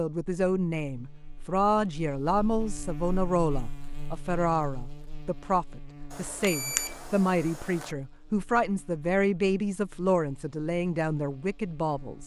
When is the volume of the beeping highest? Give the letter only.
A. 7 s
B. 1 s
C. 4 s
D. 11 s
A.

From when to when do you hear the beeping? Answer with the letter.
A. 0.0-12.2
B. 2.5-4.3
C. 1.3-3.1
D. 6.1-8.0
D.